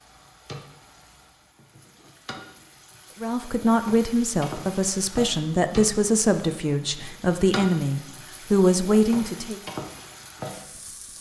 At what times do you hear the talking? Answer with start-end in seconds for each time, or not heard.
3.2-9.6.